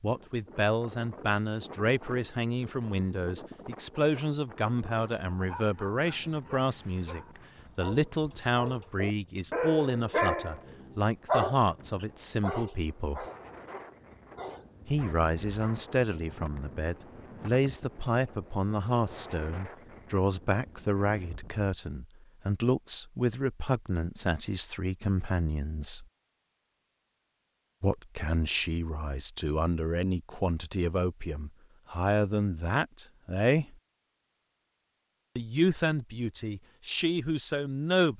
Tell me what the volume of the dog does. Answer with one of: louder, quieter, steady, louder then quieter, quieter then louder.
louder then quieter.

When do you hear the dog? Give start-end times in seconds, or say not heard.
5.3-15.9.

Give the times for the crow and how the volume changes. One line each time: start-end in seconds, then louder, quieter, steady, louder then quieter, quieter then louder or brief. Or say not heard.
not heard.